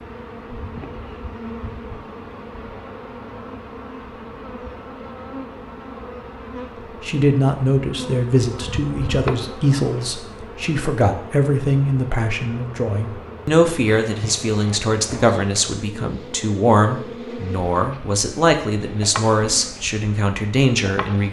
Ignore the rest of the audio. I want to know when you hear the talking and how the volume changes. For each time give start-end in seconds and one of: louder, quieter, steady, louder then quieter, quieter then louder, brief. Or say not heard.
7.0-21.2 steady.